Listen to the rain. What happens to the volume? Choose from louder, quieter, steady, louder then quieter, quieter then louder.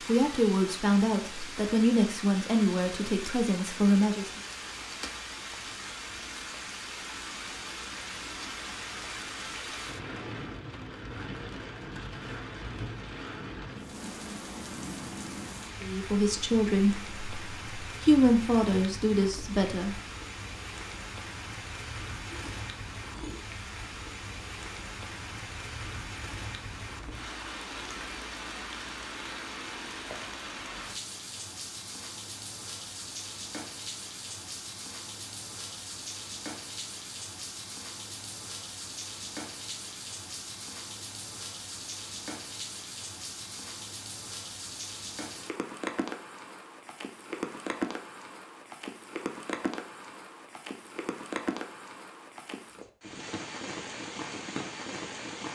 steady.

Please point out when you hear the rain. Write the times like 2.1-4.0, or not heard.
0.0-55.4.